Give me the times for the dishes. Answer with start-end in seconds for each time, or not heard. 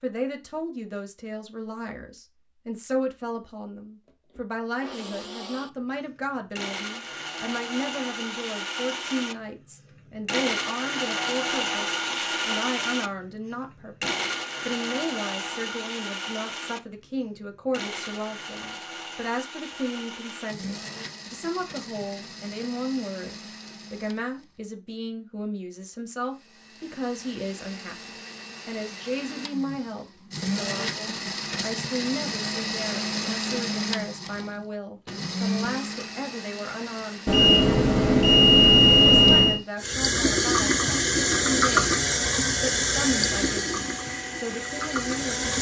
not heard.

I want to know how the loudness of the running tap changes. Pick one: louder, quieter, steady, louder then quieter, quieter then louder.
quieter.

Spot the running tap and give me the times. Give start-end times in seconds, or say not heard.
39.8-45.5.